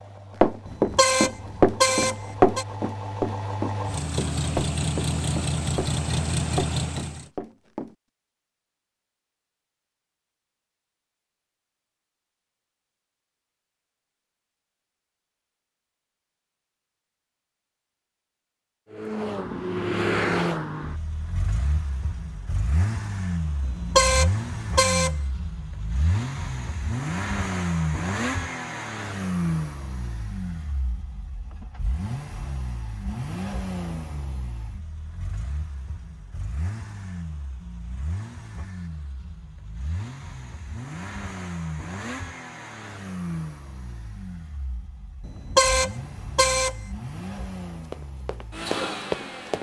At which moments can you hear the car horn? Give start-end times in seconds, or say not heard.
0.7-2.6, 23.6-25.1, 45.2-46.8.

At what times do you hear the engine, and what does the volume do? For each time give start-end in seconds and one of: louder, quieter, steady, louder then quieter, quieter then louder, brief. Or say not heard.
0.0-7.2 louder
18.9-49.5 quieter.